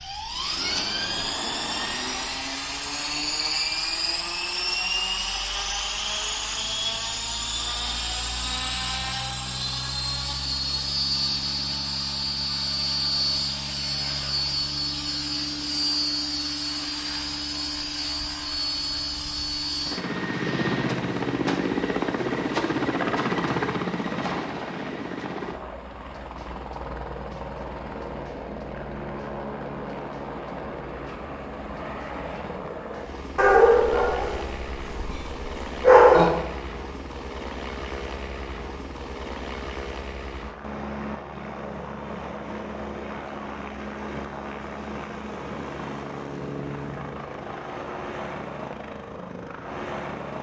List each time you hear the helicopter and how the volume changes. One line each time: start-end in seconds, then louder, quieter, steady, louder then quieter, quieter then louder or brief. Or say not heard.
0.0-50.3 quieter.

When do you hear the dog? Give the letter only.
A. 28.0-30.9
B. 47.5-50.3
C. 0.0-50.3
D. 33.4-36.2
D.